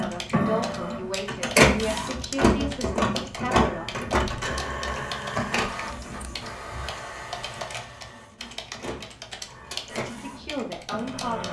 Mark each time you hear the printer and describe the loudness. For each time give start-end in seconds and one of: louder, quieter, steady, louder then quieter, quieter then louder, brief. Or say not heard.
0.0-11.4 quieter.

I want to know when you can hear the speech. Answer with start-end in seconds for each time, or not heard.
0.0-4.0, 10.0-11.4.